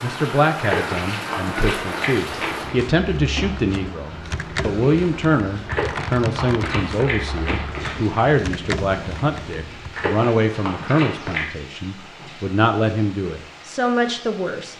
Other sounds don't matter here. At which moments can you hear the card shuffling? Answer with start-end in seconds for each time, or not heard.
0.6-2.8, 5.7-8.2, 9.9-11.4.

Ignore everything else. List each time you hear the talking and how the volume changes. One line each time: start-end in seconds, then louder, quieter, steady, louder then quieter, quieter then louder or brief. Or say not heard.
0.0-14.7 steady.